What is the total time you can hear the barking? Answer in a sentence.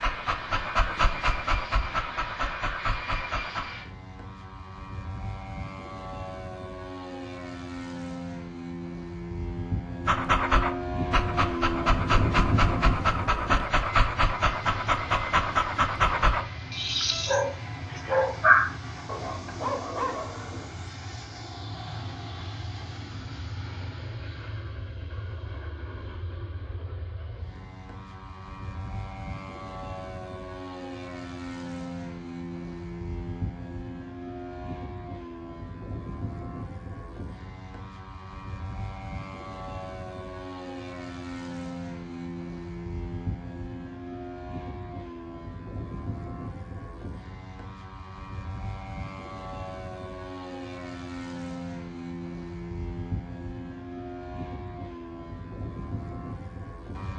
You can hear the barking for 14 seconds altogether.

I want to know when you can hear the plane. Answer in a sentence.
The plane can be heard from 0.0 to 57.1 s.